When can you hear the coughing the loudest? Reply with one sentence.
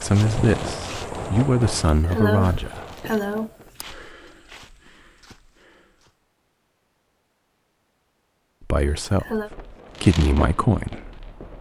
The volume of the coughing peaks at 2 seconds.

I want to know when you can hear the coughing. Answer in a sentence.
You can hear the coughing from 1.9 to 3.9 s and from 8.8 to 9.5 s.